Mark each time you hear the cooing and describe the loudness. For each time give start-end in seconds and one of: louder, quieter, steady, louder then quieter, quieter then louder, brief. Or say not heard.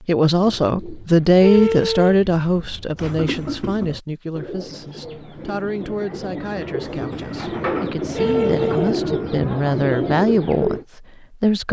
0.3-10.8 louder.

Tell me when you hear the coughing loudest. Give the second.
3 s.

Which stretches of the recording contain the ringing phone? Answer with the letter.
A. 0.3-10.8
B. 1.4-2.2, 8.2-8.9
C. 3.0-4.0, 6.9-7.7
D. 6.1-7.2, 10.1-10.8
B.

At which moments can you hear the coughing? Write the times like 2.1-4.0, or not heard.
3.0-4.0, 6.9-7.7.